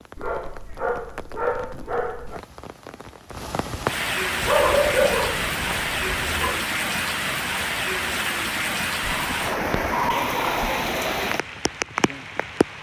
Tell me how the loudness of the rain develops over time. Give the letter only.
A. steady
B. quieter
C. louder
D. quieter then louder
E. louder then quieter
C.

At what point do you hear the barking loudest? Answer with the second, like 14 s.
5 s.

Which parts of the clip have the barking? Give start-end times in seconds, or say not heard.
0.1-2.4, 4.4-6.6, 9.0-10.8.